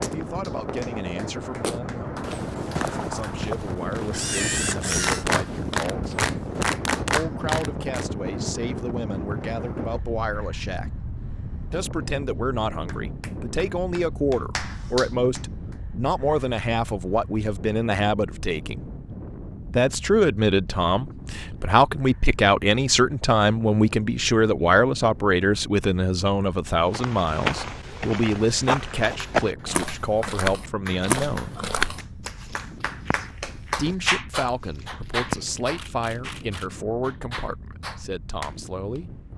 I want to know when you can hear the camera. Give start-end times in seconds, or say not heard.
4.1-5.2, 35.8-36.7.